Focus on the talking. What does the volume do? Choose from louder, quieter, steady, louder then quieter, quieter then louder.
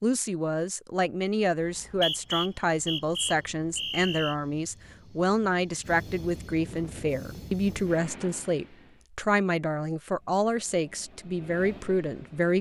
steady.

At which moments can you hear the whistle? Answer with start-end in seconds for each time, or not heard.
1.6-4.3.